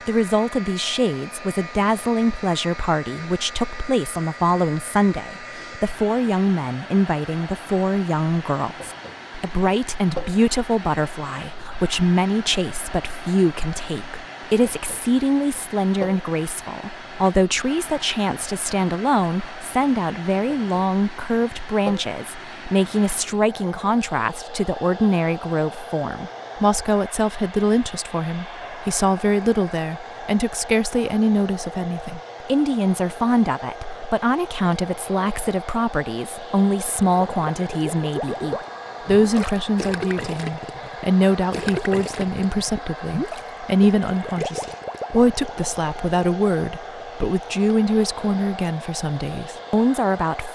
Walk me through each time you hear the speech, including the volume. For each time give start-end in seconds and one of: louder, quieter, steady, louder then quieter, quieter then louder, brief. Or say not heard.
0.1-50.5 steady.